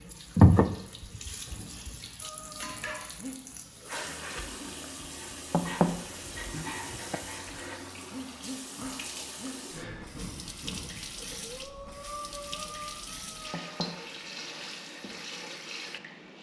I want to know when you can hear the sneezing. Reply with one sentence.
The sneezing can't be heard in this clip.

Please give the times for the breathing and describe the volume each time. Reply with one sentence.
You can hear the breathing from 2.2 to 13.9 s, at a steady volume.